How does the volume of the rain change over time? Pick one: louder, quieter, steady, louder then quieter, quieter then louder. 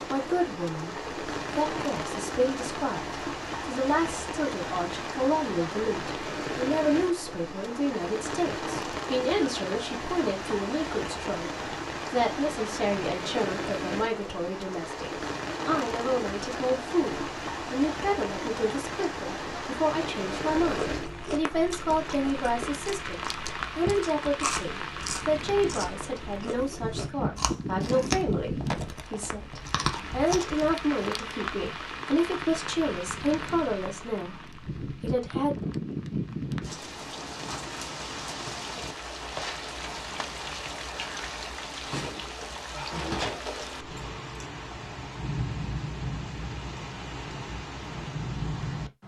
steady.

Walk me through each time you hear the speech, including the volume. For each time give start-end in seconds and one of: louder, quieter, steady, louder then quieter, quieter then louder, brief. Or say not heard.
0.1-35.5 steady.